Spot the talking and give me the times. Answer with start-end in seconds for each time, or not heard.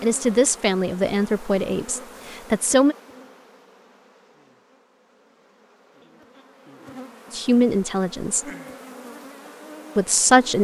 0.0-3.0, 7.3-8.4, 9.9-10.5.